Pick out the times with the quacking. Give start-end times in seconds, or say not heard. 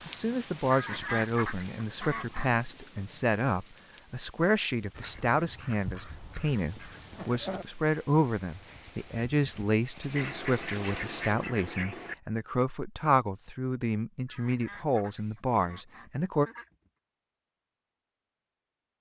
0.7-2.5, 4.9-7.7, 10.2-12.2, 14.2-16.9.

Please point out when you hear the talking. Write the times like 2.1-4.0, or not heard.
0.1-16.5.